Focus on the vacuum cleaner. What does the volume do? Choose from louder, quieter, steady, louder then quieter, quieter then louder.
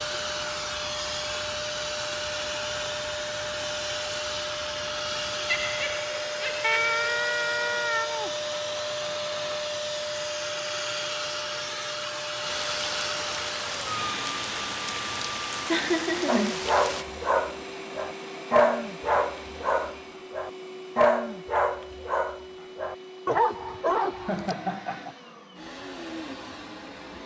quieter.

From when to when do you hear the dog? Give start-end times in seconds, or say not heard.
16.2-24.6.